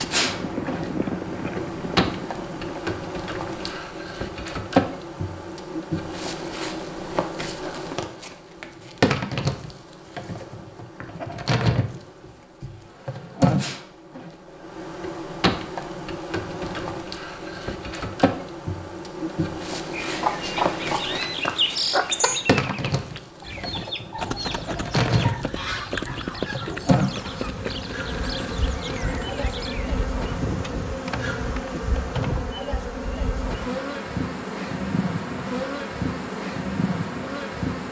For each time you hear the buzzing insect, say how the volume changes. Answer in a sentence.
The buzzing insect can be heard from 0.0 to 37.8 s, at a steady volume.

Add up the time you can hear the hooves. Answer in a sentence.
The hooves can be heard for 13 seconds in total.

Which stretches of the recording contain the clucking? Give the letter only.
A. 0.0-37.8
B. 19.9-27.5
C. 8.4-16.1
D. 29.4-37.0
B.